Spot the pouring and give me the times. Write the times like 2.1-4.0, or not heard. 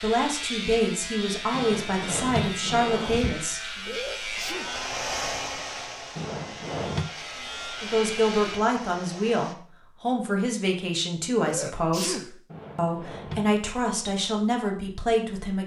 not heard.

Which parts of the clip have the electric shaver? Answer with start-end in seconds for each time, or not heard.
0.0-8.6.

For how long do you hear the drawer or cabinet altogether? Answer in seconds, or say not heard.
4 s.